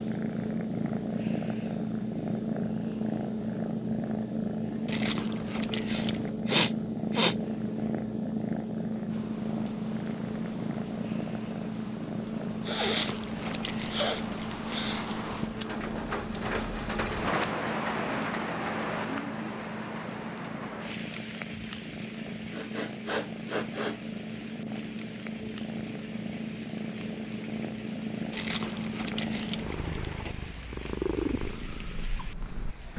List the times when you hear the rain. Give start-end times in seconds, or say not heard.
9.1-32.9.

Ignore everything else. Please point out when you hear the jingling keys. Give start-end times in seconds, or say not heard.
4.8-6.2, 12.8-14.8, 28.3-30.4.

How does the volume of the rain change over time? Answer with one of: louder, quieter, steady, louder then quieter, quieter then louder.
louder then quieter.